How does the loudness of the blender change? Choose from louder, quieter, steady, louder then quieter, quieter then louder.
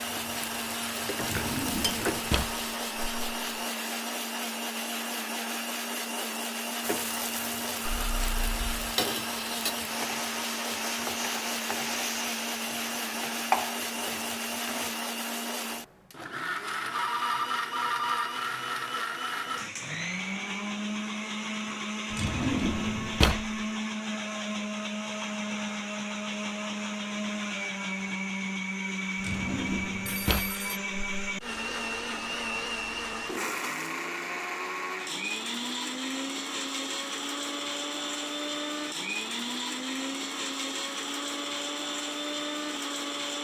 steady.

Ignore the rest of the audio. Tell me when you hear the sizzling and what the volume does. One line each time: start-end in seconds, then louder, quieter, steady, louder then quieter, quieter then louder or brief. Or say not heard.
0.0-2.8 brief
6.8-14.9 louder.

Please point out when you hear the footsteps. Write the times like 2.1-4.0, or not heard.
not heard.